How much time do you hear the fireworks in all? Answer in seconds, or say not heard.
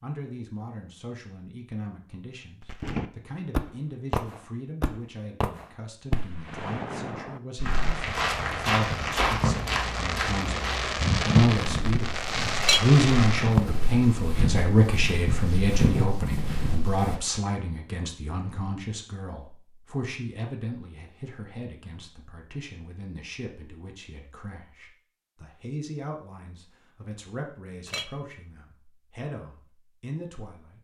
11 s.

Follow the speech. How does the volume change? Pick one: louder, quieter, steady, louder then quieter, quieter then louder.
louder then quieter.